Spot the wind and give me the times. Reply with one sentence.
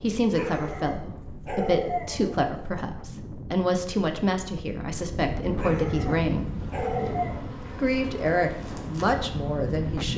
The wind can be heard from 0.0 to 10.1 s.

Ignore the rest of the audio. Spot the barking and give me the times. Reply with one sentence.
You can hear the barking from 0.3 to 2.9 s and from 5.5 to 7.4 s.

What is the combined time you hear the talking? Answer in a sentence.
The talking can be heard for 9 seconds in total.